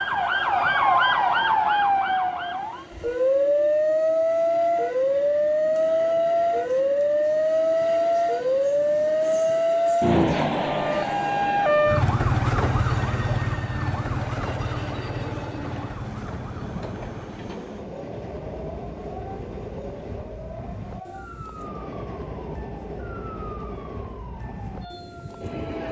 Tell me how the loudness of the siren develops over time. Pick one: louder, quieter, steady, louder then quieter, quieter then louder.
quieter.